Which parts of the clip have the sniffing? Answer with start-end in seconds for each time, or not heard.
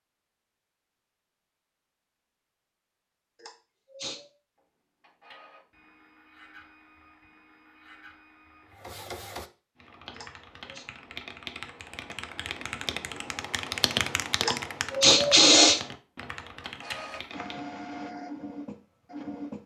3.4-4.2, 10.1-10.8, 14.4-15.8.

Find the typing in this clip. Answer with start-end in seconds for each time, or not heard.
9.8-17.6.